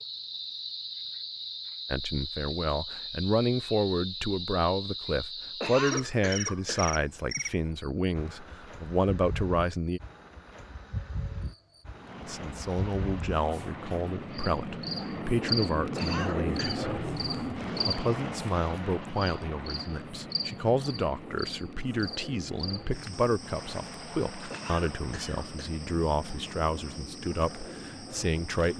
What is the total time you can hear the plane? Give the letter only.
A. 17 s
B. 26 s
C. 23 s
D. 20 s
A.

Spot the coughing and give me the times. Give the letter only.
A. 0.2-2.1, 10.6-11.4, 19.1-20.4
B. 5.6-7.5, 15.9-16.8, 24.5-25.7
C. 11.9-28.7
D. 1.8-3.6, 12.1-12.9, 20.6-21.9
B.